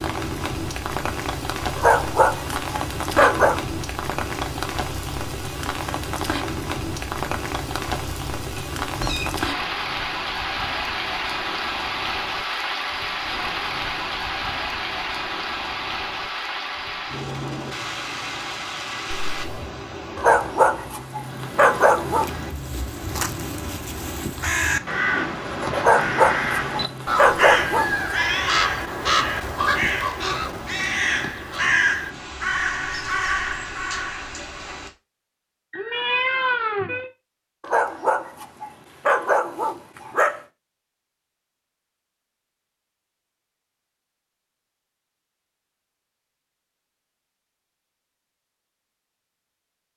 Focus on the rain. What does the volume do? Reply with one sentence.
The volume of the rain goes down.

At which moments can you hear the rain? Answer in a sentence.
You can hear the rain from 0.0 to 34.9 s.